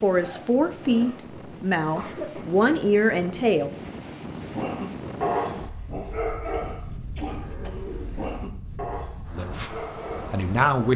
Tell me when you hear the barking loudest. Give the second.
5 s.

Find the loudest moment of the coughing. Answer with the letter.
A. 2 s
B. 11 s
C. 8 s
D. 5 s
A.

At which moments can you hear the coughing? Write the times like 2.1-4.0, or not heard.
1.8-2.5, 6.5-7.9.